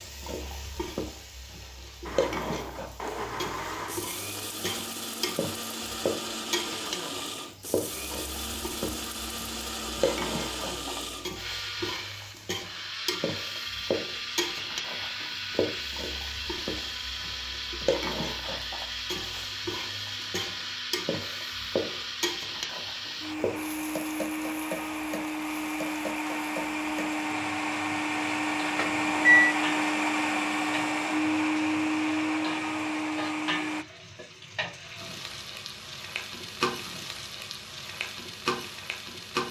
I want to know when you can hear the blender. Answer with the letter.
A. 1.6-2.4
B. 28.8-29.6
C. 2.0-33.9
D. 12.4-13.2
C.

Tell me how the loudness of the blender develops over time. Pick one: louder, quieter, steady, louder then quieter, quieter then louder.
louder.